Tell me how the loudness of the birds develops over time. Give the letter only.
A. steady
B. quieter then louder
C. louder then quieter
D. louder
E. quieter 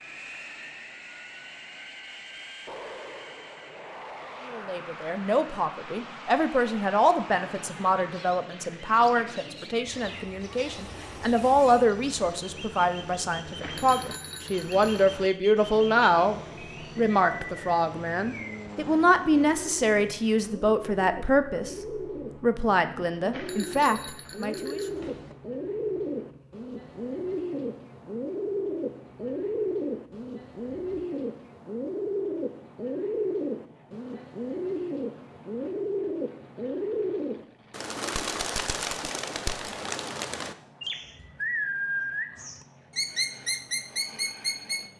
D.